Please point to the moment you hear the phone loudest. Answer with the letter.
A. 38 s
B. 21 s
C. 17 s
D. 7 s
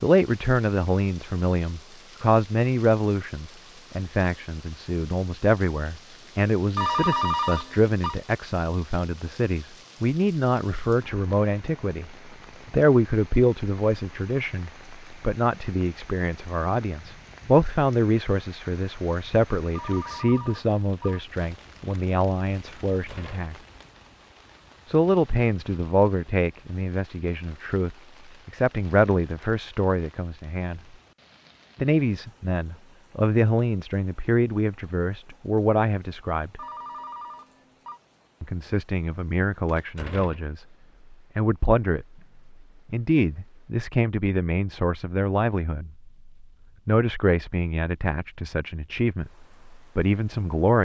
D.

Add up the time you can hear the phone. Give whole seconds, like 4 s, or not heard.
4 s.